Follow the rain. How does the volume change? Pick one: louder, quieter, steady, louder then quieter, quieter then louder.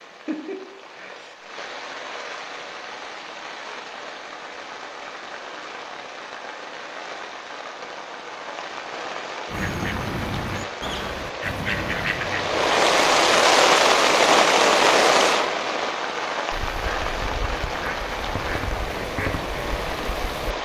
louder then quieter.